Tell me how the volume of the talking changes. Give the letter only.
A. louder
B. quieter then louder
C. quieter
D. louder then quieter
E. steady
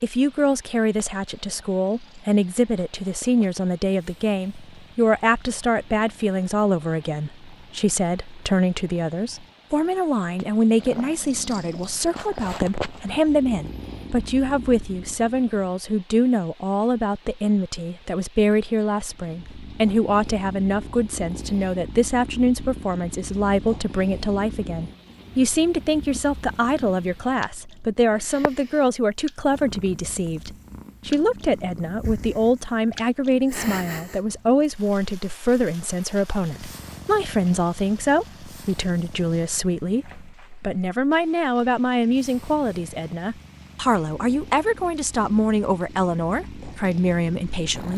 E.